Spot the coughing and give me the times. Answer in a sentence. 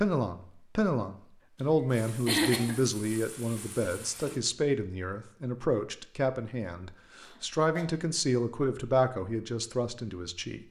You can hear the coughing from 2.2 to 2.8 s and from 7.2 to 7.8 s.